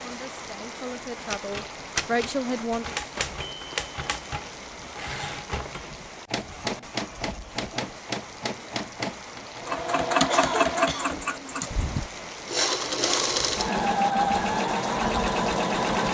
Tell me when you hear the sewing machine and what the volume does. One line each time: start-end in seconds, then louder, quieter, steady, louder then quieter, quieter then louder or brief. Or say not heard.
9.6-16.0 quieter then louder.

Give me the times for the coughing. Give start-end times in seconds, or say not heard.
10.3-11.8.